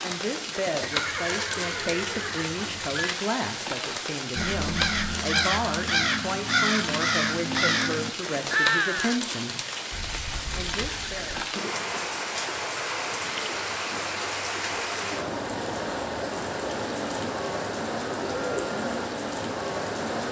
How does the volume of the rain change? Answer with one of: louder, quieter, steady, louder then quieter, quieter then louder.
steady.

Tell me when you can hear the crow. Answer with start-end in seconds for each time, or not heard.
4.3-9.2.